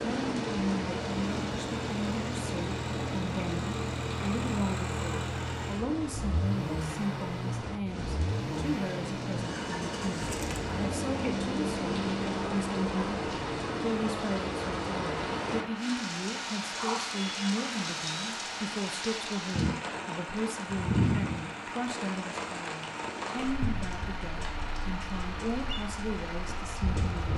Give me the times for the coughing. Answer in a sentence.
The coughing can't be heard in this clip.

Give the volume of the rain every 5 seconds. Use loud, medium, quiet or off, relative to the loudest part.
loud, medium, loud, loud, loud, medium.